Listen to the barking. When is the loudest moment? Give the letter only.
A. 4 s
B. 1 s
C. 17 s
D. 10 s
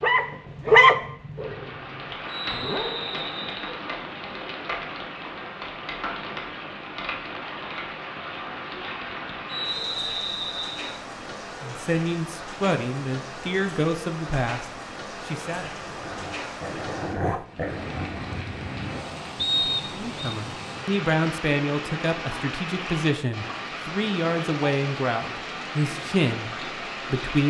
B.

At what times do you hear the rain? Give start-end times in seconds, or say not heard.
0.0-27.4.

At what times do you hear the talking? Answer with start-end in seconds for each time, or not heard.
11.6-15.7, 19.9-27.4.